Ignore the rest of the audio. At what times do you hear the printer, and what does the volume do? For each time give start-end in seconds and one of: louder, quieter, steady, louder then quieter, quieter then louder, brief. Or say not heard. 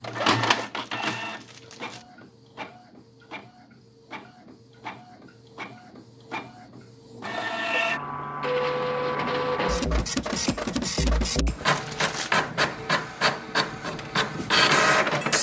0.0-15.3 quieter then louder.